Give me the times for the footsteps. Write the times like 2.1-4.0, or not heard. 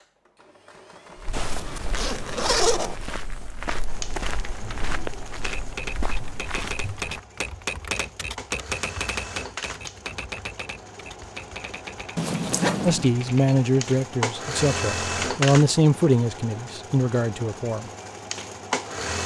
1.1-7.2.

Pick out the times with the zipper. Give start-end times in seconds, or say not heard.
1.3-3.0, 12.2-13.2.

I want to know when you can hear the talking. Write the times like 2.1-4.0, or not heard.
12.8-17.9.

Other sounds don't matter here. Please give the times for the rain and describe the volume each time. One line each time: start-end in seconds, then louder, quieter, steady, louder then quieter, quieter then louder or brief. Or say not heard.
not heard.